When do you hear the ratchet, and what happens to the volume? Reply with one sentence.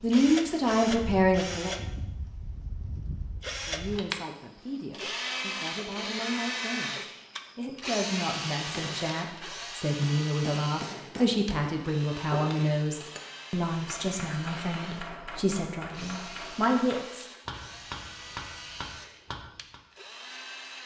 You can't hear the ratchet here.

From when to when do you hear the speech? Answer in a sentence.
You can hear the speech from 0.0 to 1.8 s and from 3.6 to 17.2 s.